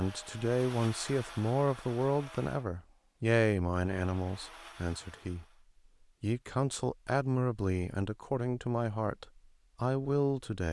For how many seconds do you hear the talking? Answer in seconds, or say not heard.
10 s.